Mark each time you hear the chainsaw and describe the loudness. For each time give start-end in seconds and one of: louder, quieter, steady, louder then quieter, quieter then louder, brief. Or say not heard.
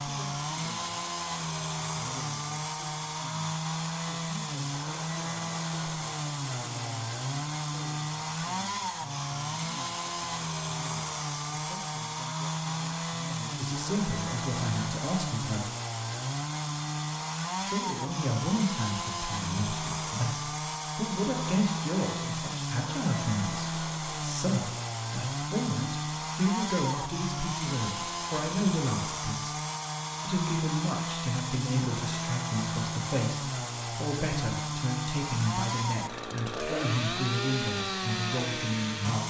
0.0-39.2 steady.